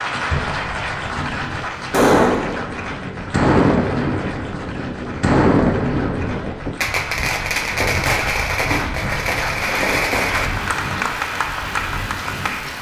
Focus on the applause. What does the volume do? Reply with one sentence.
The loudness of the applause goes down, then up.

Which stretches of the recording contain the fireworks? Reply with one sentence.
The fireworks can be heard from 0.2 to 10.5 s.